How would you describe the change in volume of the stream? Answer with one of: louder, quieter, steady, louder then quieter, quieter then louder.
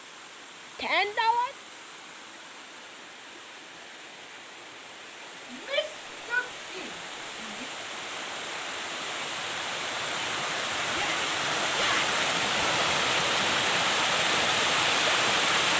louder.